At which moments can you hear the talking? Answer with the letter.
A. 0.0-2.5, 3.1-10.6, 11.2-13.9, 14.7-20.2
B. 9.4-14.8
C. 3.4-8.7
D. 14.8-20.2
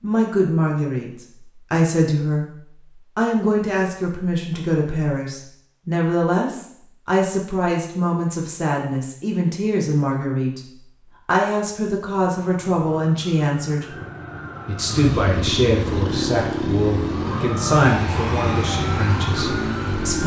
A.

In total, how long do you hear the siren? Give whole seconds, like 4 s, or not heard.
8 s.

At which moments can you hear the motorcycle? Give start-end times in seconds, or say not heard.
14.8-20.2.